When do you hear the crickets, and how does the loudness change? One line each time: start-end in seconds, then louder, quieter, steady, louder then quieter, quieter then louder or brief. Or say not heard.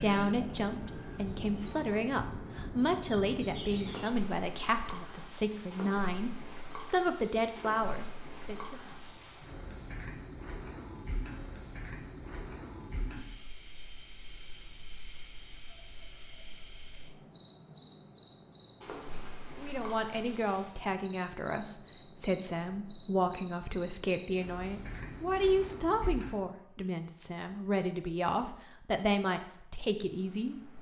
0.0-30.7 steady.